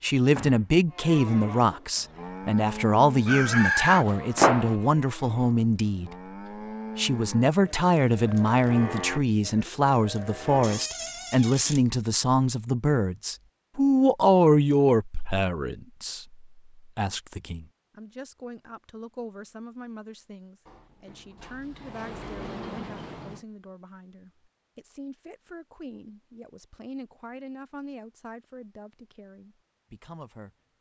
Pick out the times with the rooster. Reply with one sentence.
The rooster can be heard from 3.2 to 4.8 s.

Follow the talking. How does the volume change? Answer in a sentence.
The loudness of the talking goes down.